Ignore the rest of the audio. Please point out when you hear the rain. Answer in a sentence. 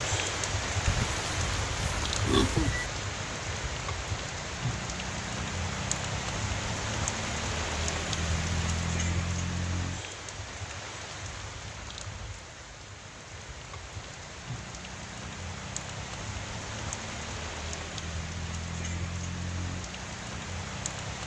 The rain can be heard from 0.0 to 21.2 s.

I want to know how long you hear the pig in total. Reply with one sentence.
You can hear the pig for 2 seconds altogether.